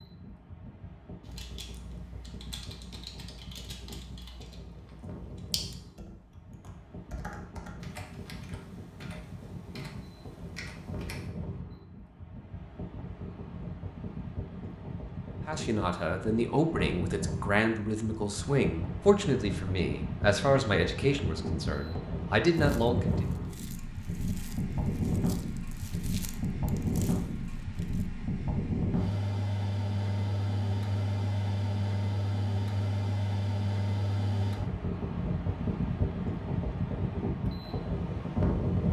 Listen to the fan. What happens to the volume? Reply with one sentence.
The volume of the fan goes up.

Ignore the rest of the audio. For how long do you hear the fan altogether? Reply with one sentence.
You can hear the fan for 39 seconds altogether.